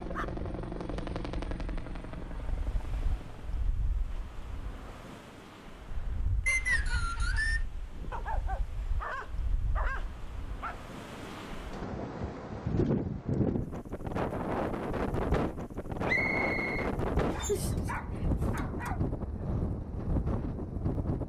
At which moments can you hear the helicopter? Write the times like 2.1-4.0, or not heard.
0.0-3.8.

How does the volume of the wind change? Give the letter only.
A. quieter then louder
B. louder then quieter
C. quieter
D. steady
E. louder
E.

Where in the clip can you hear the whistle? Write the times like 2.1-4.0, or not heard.
6.5-7.7, 16.1-17.5.